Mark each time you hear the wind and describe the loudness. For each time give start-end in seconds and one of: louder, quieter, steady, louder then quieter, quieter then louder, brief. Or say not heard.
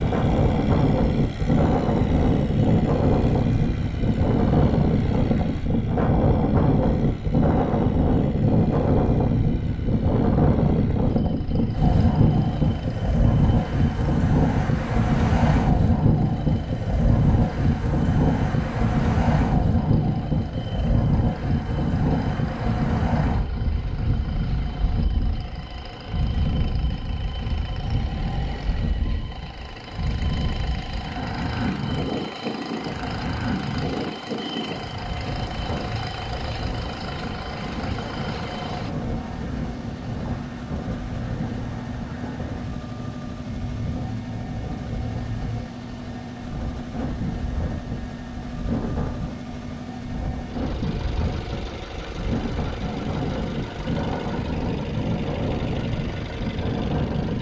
0.0-57.3 quieter.